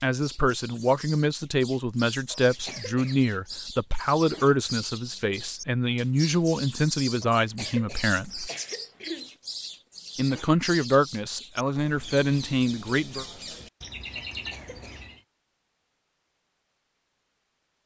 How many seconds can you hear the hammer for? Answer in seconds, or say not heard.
not heard.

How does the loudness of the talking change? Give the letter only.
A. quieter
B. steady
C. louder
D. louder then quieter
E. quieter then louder
B.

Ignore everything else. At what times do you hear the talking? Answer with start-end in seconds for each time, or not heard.
0.0-8.5, 10.2-13.2.